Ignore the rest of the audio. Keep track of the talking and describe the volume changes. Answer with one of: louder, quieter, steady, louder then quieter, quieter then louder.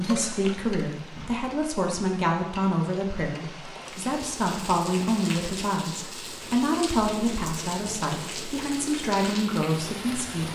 steady.